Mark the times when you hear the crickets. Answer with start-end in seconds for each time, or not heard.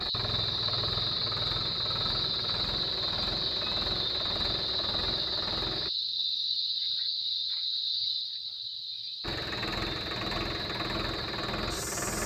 0.0-12.2.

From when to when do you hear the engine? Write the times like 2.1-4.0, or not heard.
0.0-5.9, 9.2-12.2.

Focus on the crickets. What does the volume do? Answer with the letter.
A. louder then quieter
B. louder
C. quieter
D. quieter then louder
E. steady
C.